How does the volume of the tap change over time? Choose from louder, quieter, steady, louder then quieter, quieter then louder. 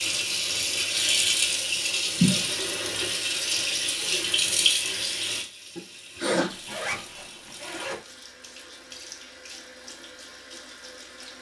quieter.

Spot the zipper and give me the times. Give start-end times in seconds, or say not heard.
6.3-8.0.